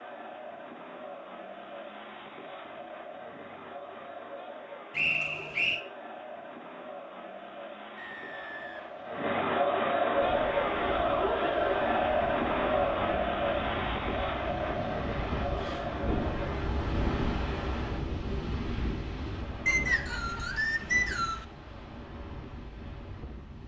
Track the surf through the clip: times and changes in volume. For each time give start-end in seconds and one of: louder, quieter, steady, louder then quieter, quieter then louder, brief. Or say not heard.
10.1-23.6 louder then quieter.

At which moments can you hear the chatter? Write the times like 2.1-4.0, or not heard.
0.0-16.6.